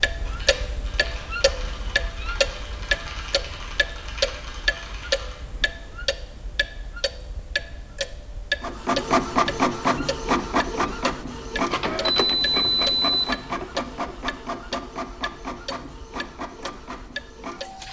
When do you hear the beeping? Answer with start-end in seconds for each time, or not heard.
12.1-13.3.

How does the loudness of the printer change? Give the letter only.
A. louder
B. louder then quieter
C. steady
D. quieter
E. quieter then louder
D.